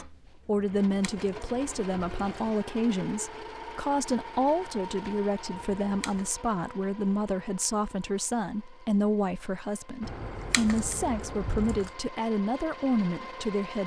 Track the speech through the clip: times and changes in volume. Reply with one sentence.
The speech can be heard from 0.0 to 13.8 s, at a steady volume.